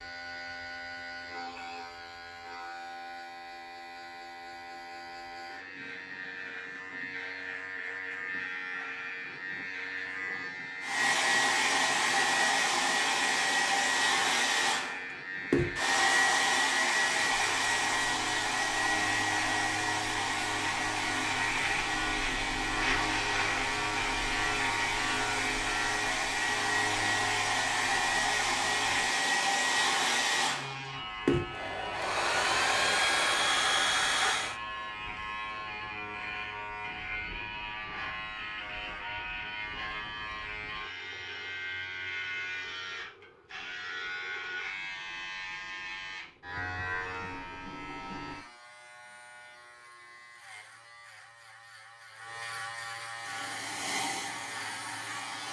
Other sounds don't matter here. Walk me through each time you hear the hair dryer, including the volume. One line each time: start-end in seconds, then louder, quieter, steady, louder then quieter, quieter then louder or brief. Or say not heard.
10.8-34.6 quieter then louder
53.1-55.4 brief.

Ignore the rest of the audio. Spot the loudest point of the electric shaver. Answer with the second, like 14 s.
23 s.